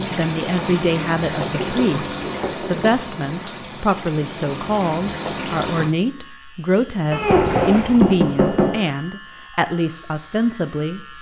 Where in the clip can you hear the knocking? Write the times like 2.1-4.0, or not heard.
1.4-2.9, 7.1-8.8.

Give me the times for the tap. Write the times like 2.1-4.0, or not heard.
0.0-6.0.